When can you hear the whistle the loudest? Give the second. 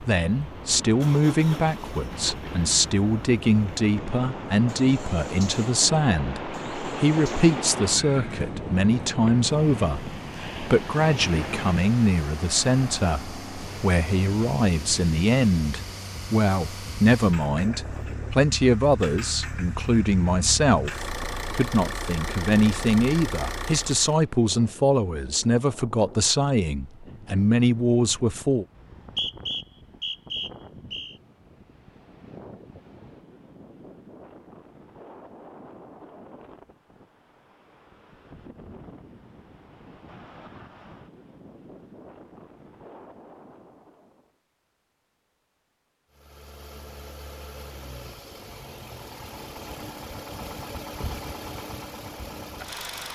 29 s.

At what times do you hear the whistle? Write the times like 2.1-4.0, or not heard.
28.8-31.1.